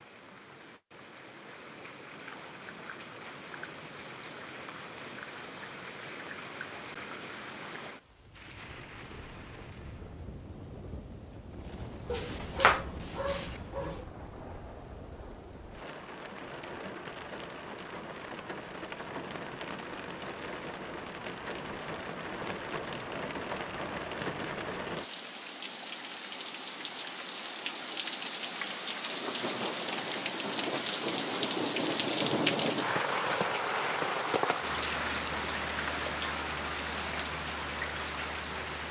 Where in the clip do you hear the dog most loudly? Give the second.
13 s.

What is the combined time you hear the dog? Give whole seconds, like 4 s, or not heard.
2 s.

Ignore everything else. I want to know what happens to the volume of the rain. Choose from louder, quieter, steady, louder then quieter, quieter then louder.
louder.